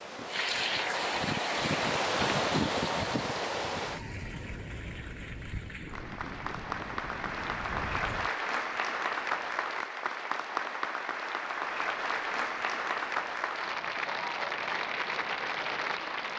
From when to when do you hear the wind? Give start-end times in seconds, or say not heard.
0.0-8.3.